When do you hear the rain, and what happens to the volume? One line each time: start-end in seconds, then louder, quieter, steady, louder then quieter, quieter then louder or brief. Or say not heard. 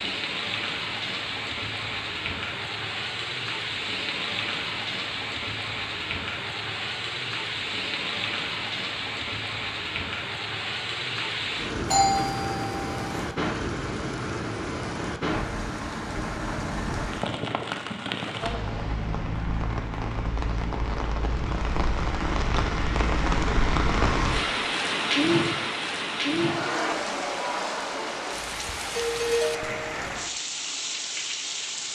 0.0-31.9 steady.